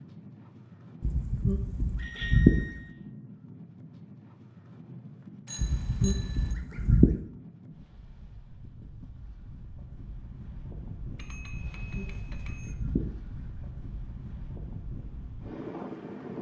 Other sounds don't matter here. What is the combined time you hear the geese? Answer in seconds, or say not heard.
5 s.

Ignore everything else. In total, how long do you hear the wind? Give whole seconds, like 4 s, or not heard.
16 s.